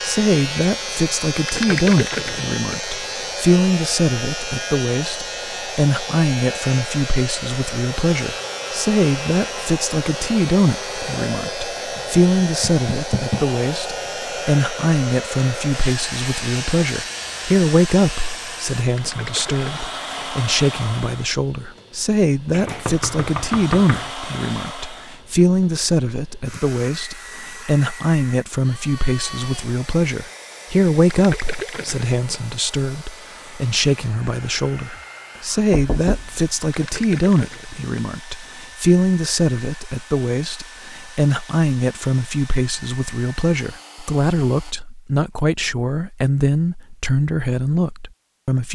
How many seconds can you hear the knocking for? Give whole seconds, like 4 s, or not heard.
4 s.